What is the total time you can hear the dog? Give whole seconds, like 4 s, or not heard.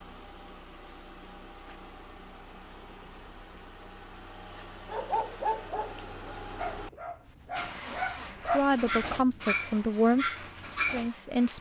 6 s.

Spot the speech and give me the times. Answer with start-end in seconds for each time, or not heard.
8.5-11.5.